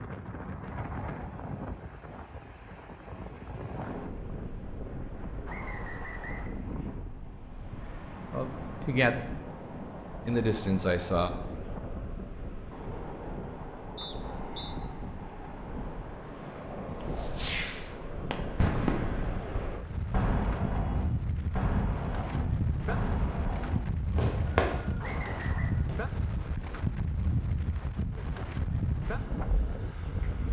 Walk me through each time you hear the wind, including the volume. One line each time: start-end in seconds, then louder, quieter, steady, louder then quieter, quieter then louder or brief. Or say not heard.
0.0-30.4 louder.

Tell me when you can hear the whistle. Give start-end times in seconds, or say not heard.
5.5-6.5, 13.9-14.8, 25.0-25.8.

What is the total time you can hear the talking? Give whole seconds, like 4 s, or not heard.
2 s.